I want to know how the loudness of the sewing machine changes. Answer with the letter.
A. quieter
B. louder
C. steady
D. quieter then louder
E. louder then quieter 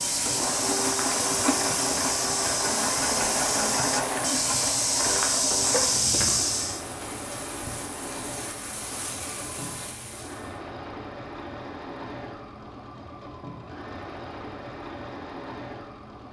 A.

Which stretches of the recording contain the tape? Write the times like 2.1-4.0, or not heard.
not heard.